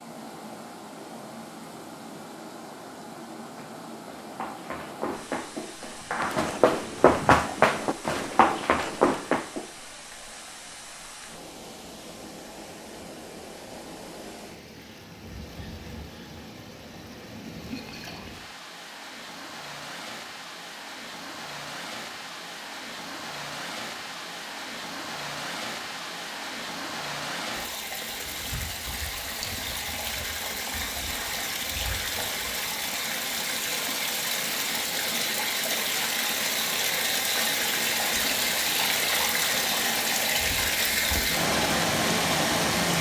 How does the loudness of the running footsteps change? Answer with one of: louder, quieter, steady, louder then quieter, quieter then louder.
louder.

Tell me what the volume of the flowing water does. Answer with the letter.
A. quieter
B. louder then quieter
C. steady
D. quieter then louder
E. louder
E.